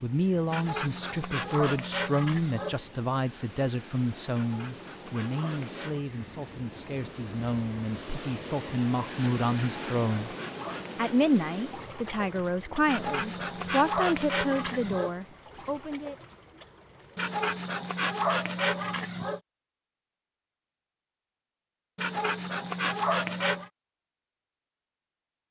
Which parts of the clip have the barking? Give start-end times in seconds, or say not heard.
0.5-2.8, 4.3-6.0, 9.6-11.2, 12.8-15.1, 17.1-19.4, 21.9-23.7.